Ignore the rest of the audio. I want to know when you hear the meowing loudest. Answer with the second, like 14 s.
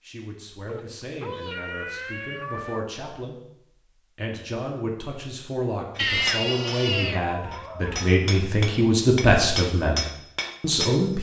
6 s.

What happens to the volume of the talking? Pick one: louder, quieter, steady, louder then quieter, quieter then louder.
louder.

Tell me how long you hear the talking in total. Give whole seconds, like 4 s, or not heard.
10 s.